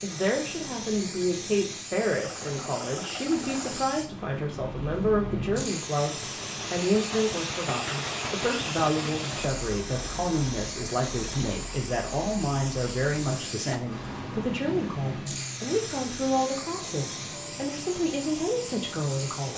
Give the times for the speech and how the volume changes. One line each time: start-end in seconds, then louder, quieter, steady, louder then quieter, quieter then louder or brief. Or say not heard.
0.0-19.5 steady.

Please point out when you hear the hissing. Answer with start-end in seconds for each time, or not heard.
0.0-19.5.